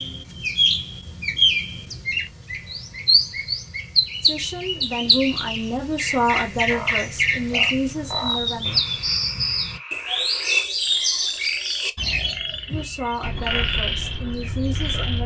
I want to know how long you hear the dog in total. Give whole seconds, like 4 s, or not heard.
not heard.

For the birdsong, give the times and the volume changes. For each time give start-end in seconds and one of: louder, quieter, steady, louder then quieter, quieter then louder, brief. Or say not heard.
0.0-15.1 quieter.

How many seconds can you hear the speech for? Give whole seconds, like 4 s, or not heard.
7 s.